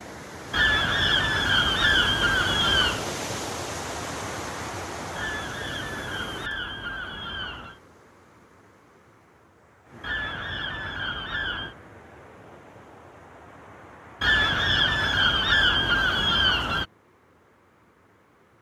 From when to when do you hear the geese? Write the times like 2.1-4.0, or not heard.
0.5-3.0, 5.2-7.8, 10.0-11.8, 14.2-16.9.